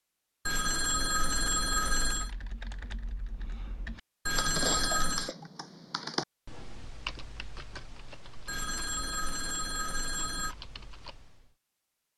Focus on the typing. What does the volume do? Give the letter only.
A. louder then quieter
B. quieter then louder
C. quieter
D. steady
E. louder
A.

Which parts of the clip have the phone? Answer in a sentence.
The phone can be heard from 0.5 to 2.3 s, from 4.2 to 5.3 s and from 8.4 to 10.6 s.